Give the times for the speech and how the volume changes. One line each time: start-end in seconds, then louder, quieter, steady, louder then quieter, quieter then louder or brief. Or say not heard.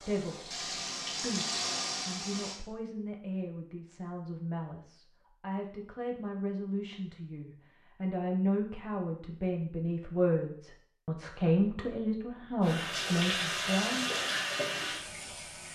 0.0-14.1 louder.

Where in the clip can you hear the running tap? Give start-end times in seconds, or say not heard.
0.0-2.6, 12.6-15.7.